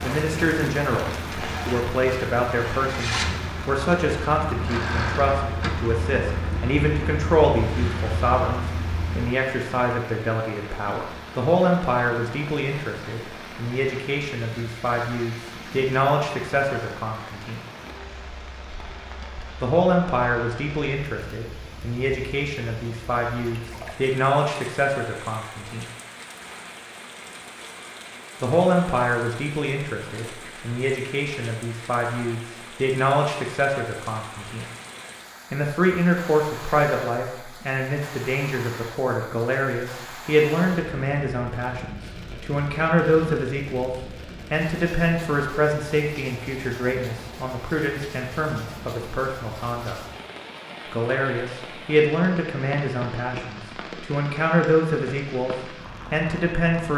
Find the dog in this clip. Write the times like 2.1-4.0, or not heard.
not heard.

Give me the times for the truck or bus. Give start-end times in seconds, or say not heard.
0.0-9.3.